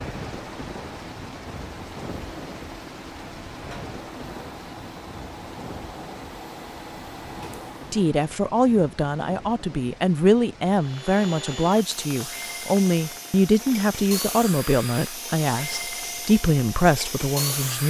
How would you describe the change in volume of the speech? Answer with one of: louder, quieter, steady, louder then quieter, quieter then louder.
steady.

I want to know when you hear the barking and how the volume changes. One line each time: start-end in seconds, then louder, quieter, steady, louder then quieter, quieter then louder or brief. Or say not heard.
not heard.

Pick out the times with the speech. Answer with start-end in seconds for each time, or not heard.
7.9-17.8.